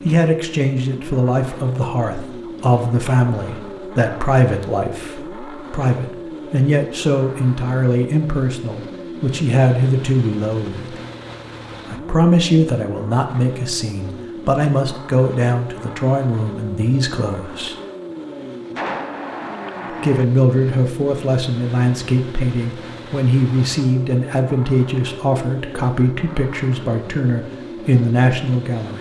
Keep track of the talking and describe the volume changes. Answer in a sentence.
The volume of the talking stays about the same.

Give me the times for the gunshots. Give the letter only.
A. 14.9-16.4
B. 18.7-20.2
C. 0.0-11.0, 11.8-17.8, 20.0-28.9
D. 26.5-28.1
B.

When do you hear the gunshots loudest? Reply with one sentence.
The loudest moment of the gunshots is at 19 seconds.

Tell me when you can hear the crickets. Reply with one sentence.
You can't hear the crickets here.